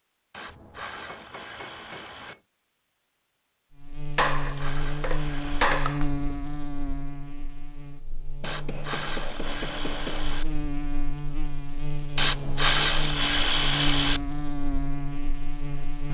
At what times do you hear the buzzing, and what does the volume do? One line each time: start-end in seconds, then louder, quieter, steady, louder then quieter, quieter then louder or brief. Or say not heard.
3.8-16.0 quieter then louder.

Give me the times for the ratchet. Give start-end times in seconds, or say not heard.
0.3-2.4, 4.4-5.8, 8.4-10.4, 12.2-14.2.